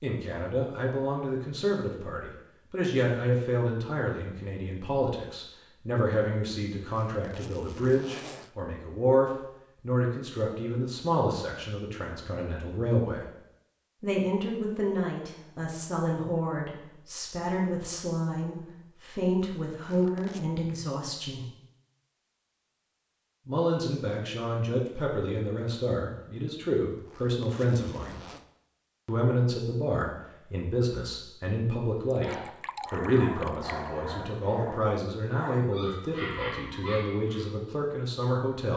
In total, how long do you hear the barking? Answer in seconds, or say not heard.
5 s.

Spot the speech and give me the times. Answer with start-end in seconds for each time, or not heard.
0.0-13.2, 14.0-21.4, 23.4-28.2, 29.1-32.3, 32.9-38.7.